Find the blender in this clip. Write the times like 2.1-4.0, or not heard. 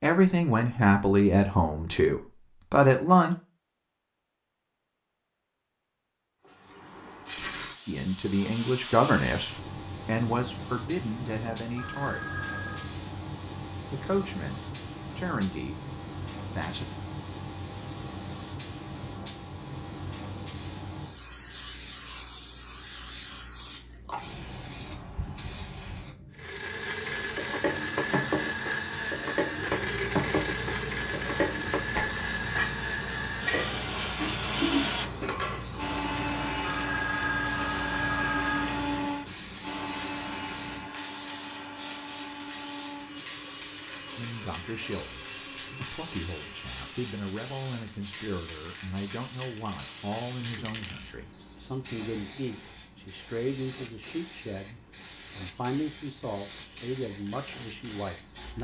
26.3-47.0.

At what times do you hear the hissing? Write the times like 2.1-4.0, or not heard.
6.5-58.5.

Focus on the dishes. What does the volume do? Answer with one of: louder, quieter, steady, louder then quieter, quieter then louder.
steady.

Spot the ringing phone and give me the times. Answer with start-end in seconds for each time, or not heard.
11.8-12.9, 36.6-38.8.